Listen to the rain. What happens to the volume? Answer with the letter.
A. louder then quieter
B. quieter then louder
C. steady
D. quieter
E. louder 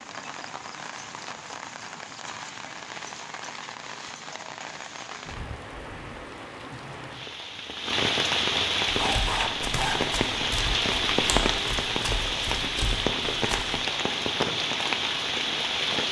E.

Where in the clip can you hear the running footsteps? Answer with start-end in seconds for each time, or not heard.
8.9-13.8.